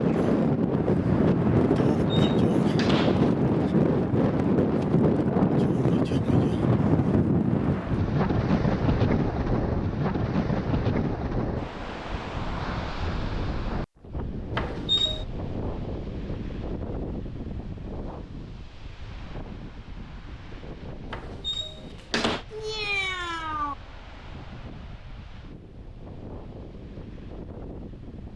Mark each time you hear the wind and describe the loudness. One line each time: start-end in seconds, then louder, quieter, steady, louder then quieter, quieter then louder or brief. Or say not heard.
0.0-28.3 quieter.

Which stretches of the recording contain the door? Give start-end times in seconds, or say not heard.
1.8-3.3, 14.6-15.2, 21.1-22.4.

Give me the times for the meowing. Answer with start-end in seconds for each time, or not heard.
22.5-23.8.